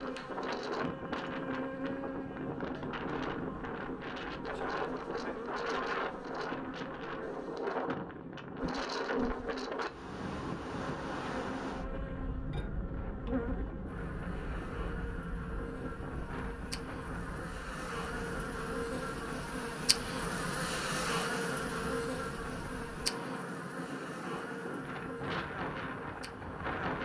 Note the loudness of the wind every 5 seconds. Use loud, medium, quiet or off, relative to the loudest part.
loud, loud, loud, medium, medium, loud.